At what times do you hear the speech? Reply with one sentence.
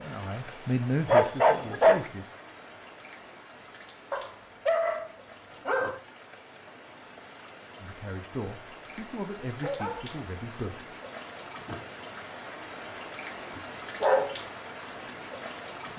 You can hear the speech from 0.0 to 2.2 s and from 7.8 to 10.9 s.